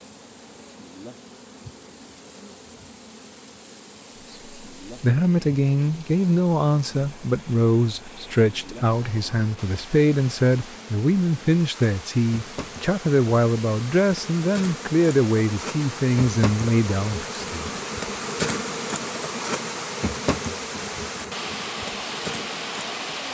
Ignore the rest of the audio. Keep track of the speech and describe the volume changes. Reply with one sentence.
The loudness of the speech stays about the same.